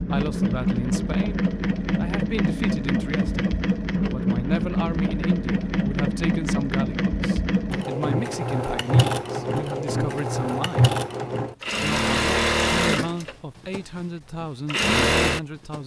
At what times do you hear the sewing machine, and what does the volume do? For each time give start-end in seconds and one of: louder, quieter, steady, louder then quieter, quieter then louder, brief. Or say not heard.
0.0-15.8 steady.